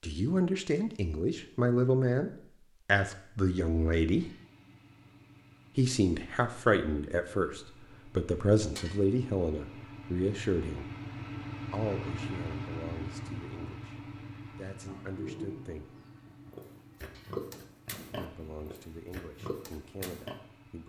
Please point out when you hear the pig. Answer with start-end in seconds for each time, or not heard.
14.8-20.4.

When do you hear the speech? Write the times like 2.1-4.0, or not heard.
0.0-4.3, 5.8-10.9, 11.7-15.9, 18.1-20.8.